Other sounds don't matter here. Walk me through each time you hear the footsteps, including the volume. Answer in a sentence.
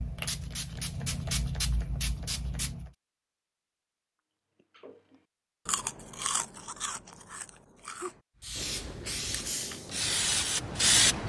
The footsteps can't be heard in this clip.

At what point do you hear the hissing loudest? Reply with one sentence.
The volume of the hissing peaks at 11 seconds.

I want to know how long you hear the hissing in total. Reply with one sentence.
You can hear the hissing for 6 seconds altogether.